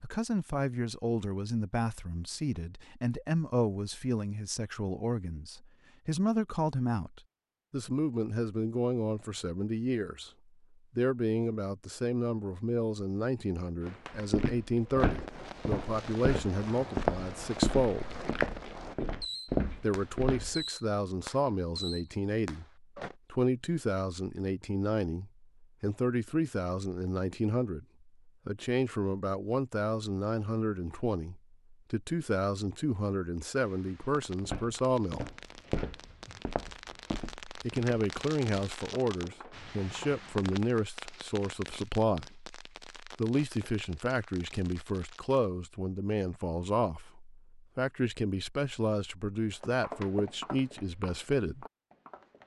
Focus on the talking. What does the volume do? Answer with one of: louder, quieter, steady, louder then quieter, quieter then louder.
steady.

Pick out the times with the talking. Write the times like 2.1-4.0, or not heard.
0.0-10.3, 10.9-18.1, 19.8-35.2, 37.6-51.6.